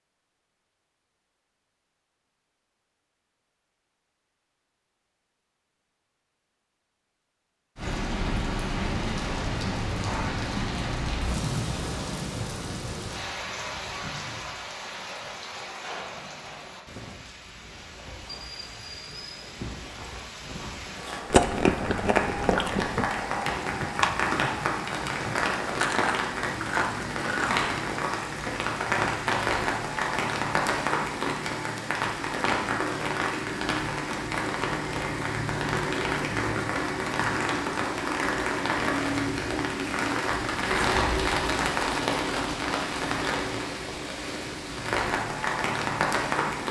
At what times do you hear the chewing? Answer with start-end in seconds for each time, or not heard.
21.3-27.9.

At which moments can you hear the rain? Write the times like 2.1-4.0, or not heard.
7.8-46.6.